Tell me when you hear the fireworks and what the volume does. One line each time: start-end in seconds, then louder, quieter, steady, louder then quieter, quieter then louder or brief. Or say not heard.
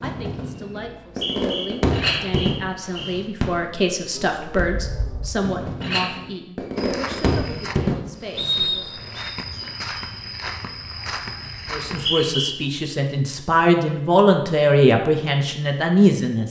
0.0-8.7 quieter then louder.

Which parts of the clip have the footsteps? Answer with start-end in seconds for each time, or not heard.
6.8-12.2.